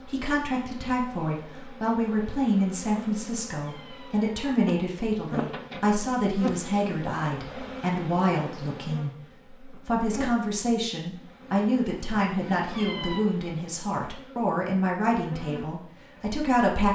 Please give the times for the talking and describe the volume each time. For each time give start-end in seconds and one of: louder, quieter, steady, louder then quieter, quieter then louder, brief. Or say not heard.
0.1-16.8 steady.